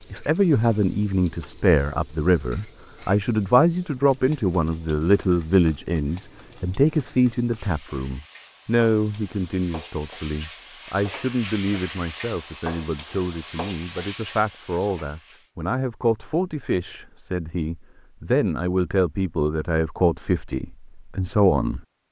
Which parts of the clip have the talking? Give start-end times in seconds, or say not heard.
0.1-21.8.